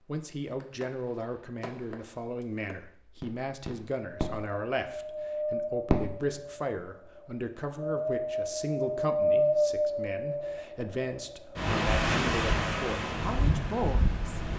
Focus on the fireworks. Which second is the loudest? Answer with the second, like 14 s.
6 s.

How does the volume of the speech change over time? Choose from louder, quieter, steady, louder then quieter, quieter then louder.
steady.